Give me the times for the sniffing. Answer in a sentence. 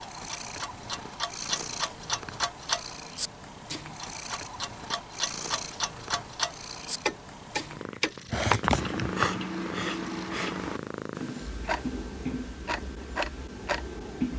The sniffing can be heard from 8.3 to 10.5 s.